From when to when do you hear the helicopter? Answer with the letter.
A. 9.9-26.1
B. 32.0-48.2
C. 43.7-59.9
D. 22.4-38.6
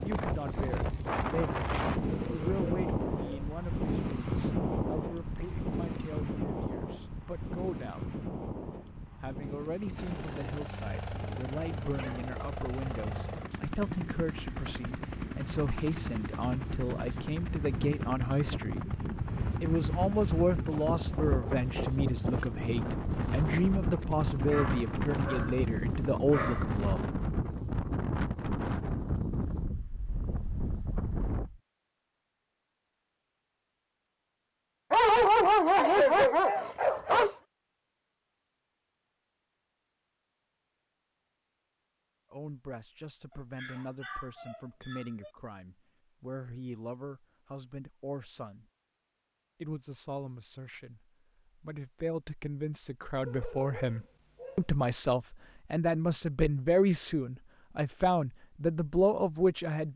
A.